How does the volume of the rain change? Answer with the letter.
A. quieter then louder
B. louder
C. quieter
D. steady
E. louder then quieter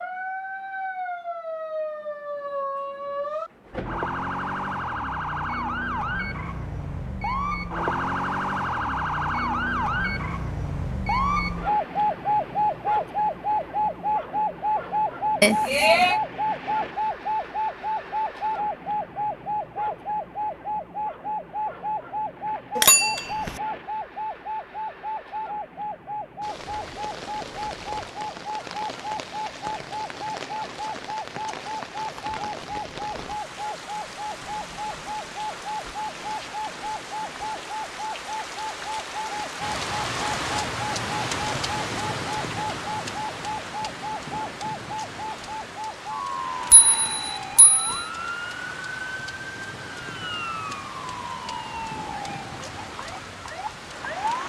E.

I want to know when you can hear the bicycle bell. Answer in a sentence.
The bicycle bell can be heard from 15.4 to 16.2 s, from 22.8 to 23.6 s and from 46.7 to 48.0 s.